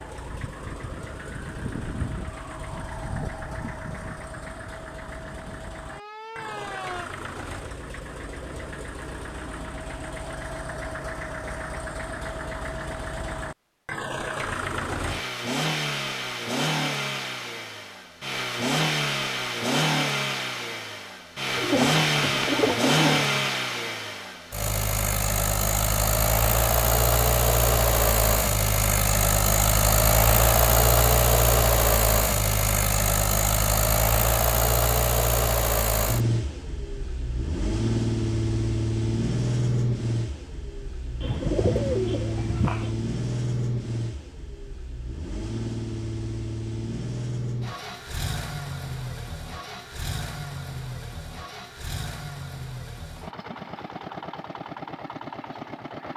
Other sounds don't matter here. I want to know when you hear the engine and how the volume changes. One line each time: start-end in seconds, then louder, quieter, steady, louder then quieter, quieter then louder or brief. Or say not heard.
0.0-56.1 louder then quieter.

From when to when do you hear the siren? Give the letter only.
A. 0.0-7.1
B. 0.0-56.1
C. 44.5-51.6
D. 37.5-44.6
A.